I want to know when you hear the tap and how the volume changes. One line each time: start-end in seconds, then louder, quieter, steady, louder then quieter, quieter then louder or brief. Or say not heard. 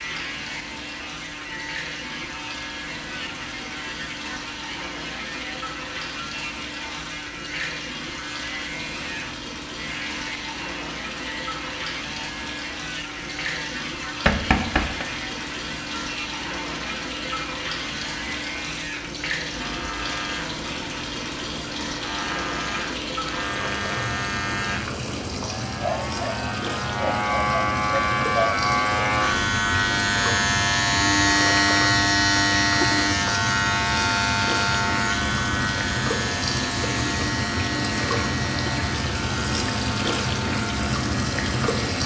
0.0-42.0 louder.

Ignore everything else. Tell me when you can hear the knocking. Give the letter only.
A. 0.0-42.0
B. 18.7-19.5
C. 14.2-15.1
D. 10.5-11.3
C.